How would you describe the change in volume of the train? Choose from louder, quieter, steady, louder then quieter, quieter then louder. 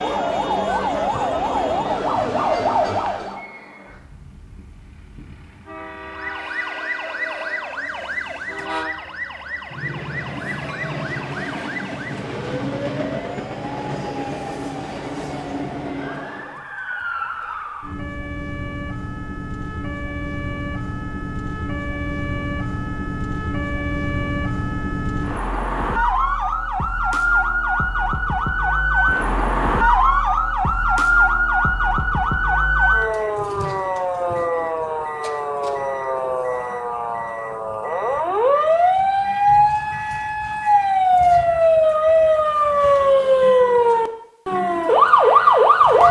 louder.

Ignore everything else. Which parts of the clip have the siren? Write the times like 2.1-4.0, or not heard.
0.0-3.5, 6.0-46.0.